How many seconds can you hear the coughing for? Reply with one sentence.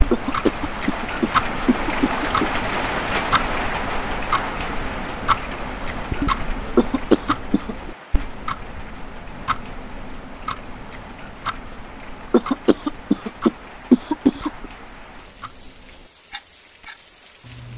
The coughing can be heard for 6 seconds in total.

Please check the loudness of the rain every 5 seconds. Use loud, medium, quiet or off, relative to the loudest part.
loud, medium, quiet, quiet.